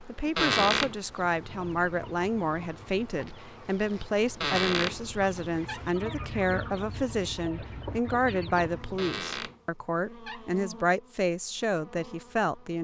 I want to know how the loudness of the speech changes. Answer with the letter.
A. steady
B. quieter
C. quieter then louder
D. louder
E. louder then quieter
A.